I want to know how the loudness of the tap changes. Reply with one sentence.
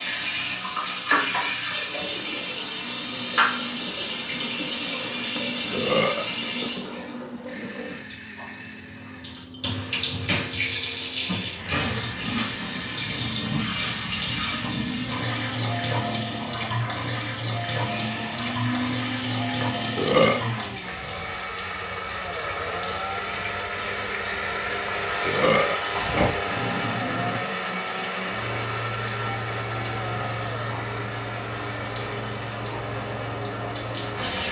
The loudness of the tap goes down.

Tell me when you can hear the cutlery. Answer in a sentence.
You can't hear the cutlery here.